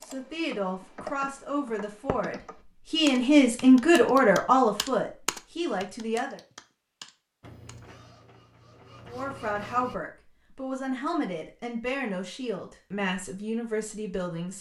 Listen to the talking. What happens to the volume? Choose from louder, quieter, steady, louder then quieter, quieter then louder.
louder then quieter.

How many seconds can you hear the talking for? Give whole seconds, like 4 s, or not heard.
12 s.